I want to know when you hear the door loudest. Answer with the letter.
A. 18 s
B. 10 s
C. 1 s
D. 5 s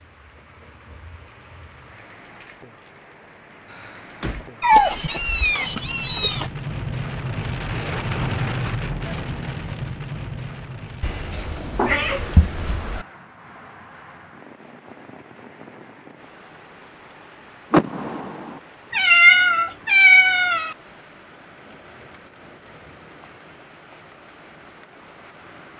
A.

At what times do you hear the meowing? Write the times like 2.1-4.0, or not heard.
4.6-6.5, 11.0-13.1, 18.9-20.8.